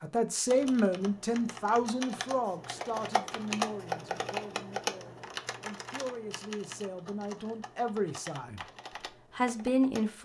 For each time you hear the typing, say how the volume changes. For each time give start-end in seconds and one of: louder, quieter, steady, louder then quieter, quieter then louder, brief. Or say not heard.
0.5-10.1 louder then quieter.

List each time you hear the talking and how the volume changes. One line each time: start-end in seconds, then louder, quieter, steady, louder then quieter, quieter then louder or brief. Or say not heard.
0.0-8.6 quieter then louder
9.3-10.1 brief.